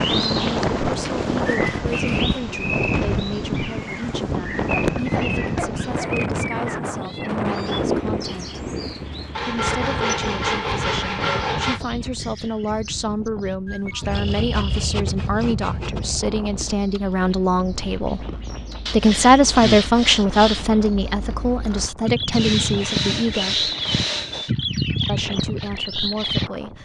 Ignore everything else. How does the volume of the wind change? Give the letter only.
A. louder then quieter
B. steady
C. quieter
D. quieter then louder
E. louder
C.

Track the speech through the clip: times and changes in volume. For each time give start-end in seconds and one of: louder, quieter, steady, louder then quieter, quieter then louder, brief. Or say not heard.
0.2-8.6 steady
9.4-18.2 louder
18.9-23.7 quieter
25.1-26.8 brief.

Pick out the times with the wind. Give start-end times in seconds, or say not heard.
0.0-26.8.